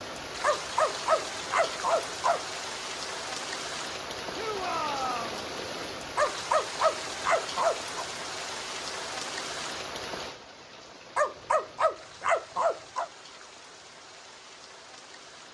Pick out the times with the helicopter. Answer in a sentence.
You can't hear the helicopter here.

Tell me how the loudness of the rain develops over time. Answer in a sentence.
The volume of the rain goes down.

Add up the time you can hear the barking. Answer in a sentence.
You can hear the barking for 6 seconds altogether.